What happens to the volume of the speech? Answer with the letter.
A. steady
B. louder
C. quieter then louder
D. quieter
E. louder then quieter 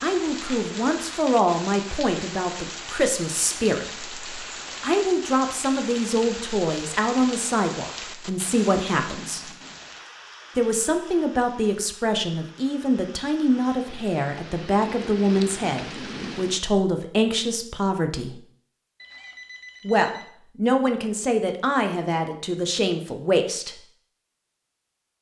A.